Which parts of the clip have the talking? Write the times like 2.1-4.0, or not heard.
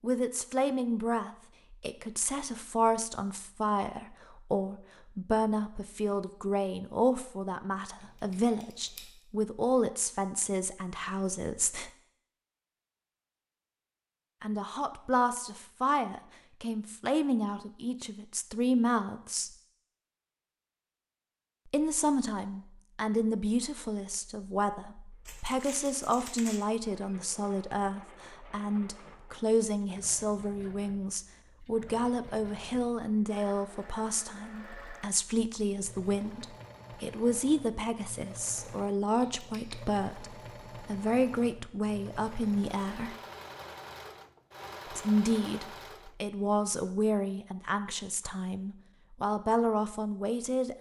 0.0-11.9, 14.4-19.5, 21.6-43.1, 44.9-50.7.